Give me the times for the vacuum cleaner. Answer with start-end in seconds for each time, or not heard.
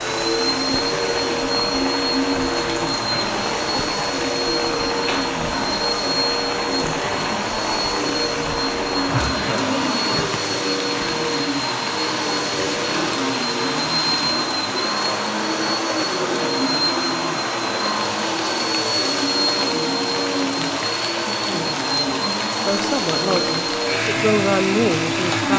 0.0-25.5.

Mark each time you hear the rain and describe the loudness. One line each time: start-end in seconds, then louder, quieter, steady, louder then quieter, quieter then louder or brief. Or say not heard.
0.0-25.5 steady.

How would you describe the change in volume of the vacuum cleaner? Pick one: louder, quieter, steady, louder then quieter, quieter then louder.
steady.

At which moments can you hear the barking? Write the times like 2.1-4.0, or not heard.
not heard.